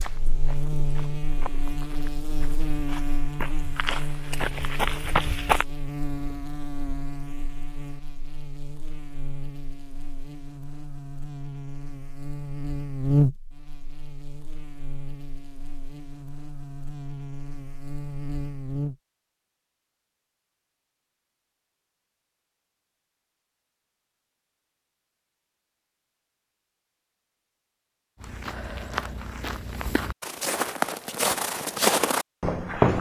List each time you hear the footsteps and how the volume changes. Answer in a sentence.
You can hear the footsteps from 0.0 to 5.7 s, getting louder; and from 28.2 to 32.9 s, getting louder.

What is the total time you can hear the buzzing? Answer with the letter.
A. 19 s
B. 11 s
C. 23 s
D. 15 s
A.